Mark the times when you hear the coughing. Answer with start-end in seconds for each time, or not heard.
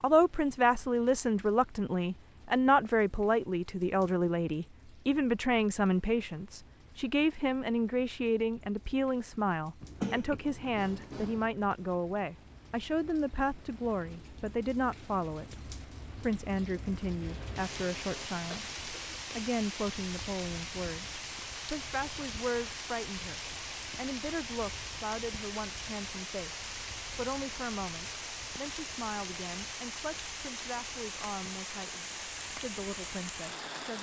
9.8-11.5, 17.2-19.2.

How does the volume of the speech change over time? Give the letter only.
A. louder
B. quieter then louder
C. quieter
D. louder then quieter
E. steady
C.